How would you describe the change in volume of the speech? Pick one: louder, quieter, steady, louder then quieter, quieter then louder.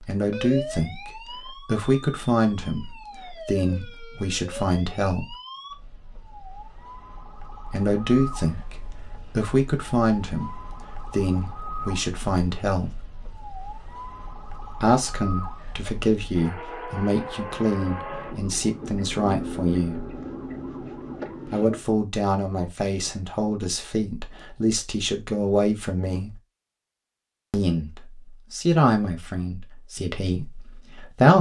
steady.